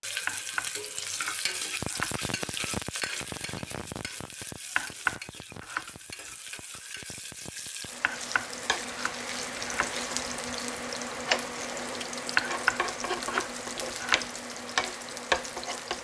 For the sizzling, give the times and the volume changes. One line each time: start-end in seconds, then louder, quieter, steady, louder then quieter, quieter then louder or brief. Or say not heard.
0.0-16.0 quieter then louder.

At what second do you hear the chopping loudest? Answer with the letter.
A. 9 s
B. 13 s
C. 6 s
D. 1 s
B.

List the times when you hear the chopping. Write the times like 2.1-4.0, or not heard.
0.2-2.1, 4.8-6.3, 8.0-9.9, 12.3-14.2.